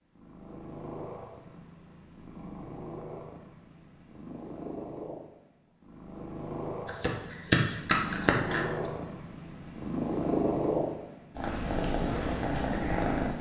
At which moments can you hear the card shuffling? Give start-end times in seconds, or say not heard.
6.8-8.7.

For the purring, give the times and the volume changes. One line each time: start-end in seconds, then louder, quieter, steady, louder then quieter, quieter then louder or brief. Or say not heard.
0.1-13.3 louder.